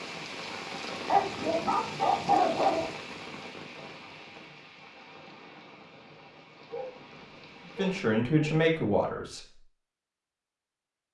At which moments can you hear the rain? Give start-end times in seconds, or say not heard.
0.0-8.1.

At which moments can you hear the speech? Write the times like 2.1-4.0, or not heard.
7.8-9.6.